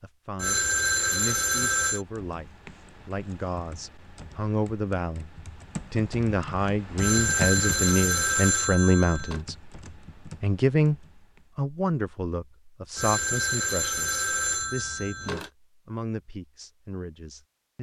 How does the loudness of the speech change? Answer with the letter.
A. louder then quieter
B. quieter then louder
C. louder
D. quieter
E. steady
A.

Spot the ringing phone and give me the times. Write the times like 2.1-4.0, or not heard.
0.3-2.0, 7.0-9.4, 12.9-15.5.